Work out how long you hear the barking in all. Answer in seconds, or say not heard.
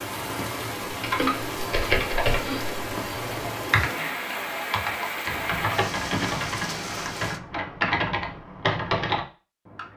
not heard.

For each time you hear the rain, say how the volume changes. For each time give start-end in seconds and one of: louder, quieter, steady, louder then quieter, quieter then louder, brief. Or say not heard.
0.0-7.4 steady.